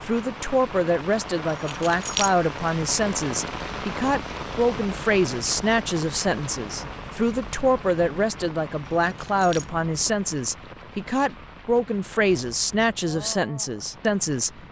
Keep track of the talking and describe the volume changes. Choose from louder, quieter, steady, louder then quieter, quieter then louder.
steady.